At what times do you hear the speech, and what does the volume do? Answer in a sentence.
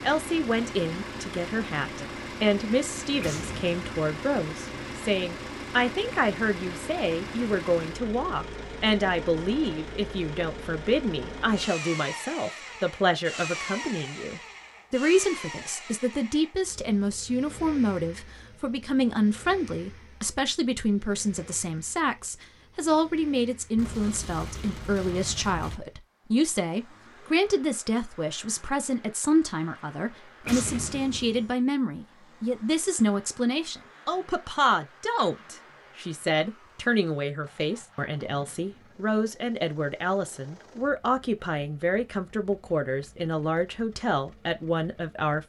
The speech can be heard from 0.0 to 45.4 s, at a steady volume.